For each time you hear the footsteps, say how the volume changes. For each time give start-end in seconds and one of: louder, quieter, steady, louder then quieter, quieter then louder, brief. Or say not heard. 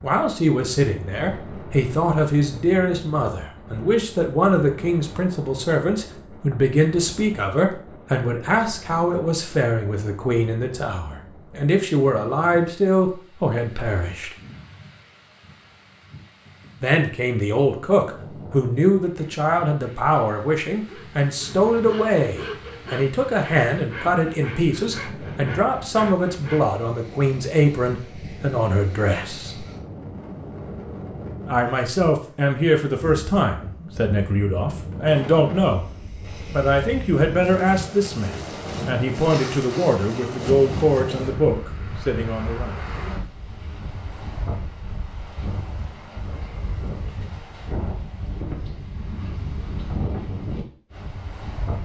not heard.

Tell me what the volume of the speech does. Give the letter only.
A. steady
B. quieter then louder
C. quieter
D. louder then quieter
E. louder
A.